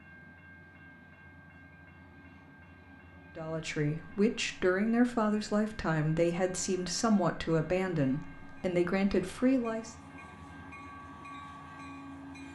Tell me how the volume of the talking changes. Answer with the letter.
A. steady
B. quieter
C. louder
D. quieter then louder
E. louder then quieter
A.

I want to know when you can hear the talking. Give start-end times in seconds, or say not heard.
3.4-9.9.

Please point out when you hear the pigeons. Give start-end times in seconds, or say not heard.
not heard.